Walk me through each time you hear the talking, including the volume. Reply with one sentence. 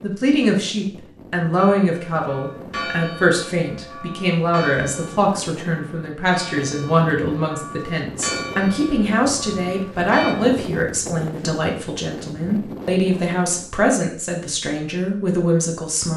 The talking can be heard from 0.0 to 16.1 s, at a steady volume.